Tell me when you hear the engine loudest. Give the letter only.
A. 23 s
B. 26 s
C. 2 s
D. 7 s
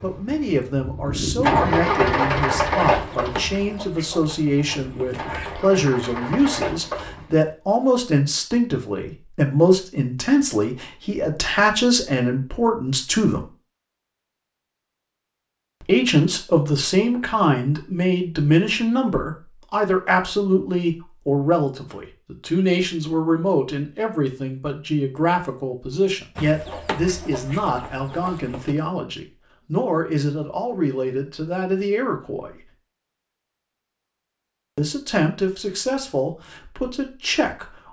C.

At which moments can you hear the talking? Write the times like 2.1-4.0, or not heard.
0.0-13.5, 15.8-32.6, 34.8-37.8.